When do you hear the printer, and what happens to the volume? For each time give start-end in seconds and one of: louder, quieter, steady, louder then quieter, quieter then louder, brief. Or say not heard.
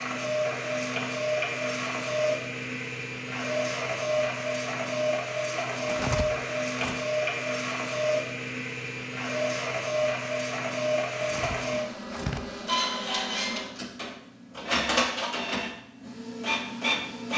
0.0-17.3 steady.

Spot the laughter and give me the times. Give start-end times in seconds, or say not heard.
not heard.